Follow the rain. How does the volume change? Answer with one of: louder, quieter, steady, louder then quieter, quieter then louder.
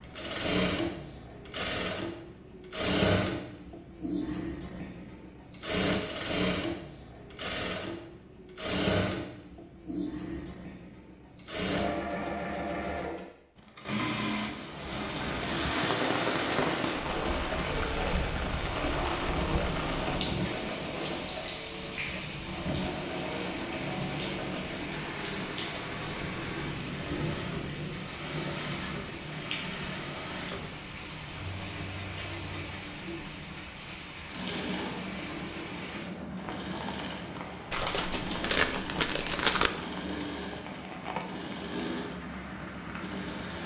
quieter.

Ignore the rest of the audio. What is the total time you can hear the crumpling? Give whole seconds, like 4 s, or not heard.
2 s.